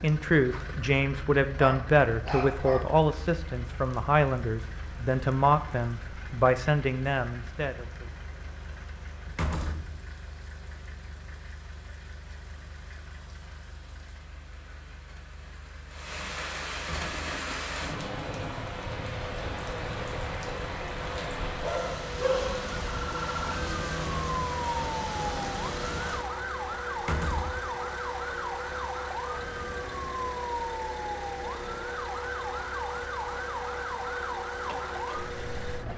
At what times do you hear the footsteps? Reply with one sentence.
You can't hear the footsteps here.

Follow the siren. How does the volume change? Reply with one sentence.
The volume of the siren stays about the same.